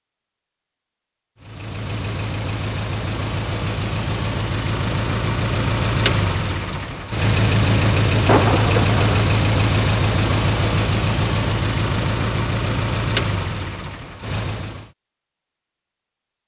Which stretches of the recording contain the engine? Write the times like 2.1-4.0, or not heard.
1.4-14.9.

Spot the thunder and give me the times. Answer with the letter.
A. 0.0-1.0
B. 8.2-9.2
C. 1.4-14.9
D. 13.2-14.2
B.